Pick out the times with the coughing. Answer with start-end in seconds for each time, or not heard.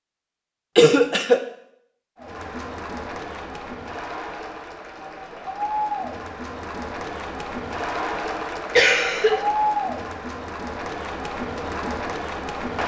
0.8-1.4, 8.8-9.4.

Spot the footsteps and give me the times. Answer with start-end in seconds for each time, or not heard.
not heard.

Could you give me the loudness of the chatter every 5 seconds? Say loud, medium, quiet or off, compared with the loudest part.
medium, loud, loud.